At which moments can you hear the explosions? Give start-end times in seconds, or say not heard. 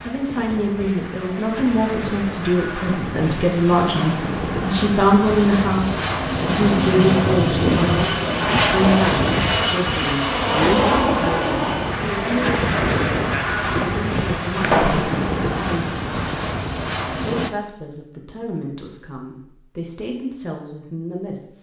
14.6-15.1.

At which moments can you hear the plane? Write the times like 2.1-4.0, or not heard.
0.0-17.5.